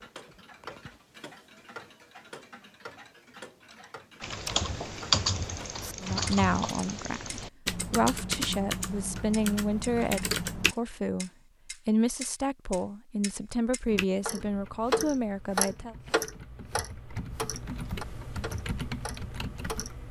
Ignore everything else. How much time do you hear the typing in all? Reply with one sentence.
The typing can be heard for 13 seconds in total.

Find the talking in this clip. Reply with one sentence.
You can hear the talking from 6.0 to 15.9 s.